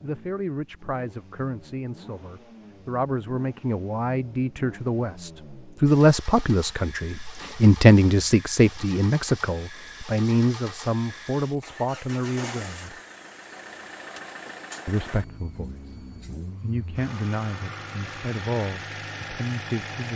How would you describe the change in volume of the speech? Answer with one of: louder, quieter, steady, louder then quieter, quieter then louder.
louder then quieter.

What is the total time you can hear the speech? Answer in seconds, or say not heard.
18 s.